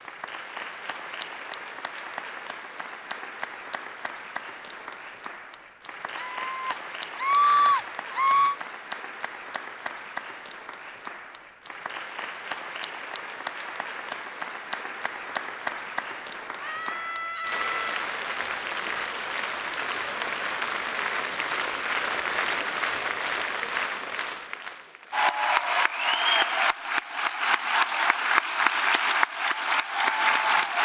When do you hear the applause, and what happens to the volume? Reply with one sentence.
You can hear the applause from 0.0 to 30.7 s, getting louder.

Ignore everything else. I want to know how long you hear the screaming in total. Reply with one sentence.
You can hear the screaming for 4 seconds altogether.